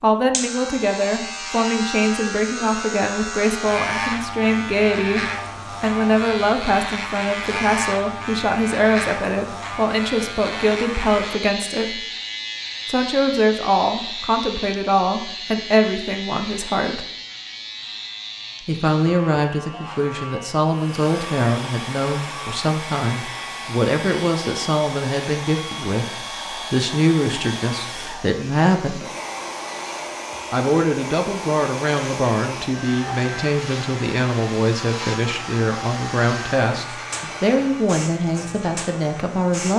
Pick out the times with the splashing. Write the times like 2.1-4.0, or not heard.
not heard.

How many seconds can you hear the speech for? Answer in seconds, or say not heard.
36 s.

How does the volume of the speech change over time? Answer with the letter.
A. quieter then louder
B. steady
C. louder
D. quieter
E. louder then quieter
B.